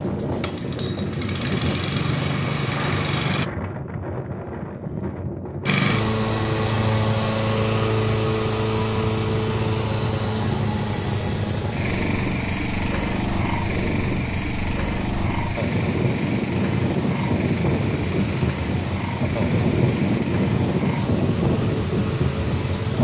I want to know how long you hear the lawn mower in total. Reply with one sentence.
The lawn mower can be heard for 21 seconds in total.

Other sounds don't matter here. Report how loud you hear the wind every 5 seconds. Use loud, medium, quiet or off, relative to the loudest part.
medium, medium, medium, loud, loud.